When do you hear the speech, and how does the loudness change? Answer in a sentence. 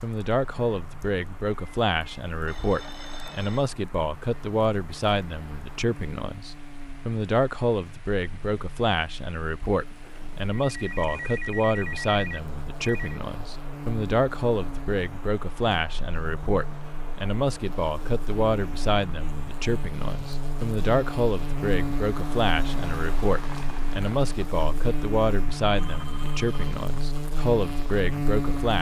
You can hear the speech from 0.0 to 28.7 s, at a steady volume.